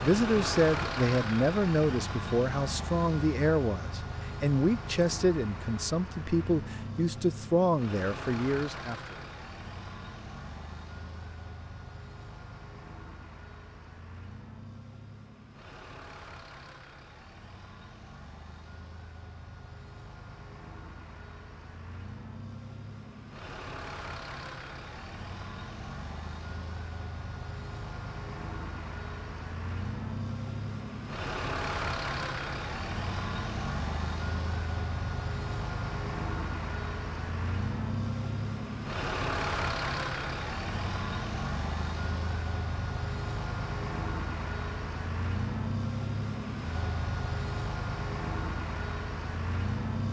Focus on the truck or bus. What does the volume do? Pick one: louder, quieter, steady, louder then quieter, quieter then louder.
quieter then louder.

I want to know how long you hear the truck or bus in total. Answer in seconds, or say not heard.
50 s.